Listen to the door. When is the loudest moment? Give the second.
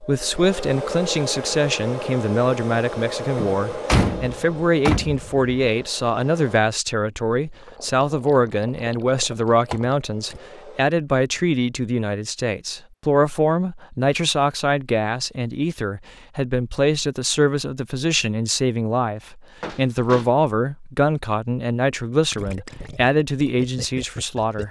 4 s.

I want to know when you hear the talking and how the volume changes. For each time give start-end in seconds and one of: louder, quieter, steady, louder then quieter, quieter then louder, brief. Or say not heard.
0.0-24.6 steady.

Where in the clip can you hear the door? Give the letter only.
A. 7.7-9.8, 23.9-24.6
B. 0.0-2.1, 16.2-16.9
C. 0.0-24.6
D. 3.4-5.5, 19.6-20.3
D.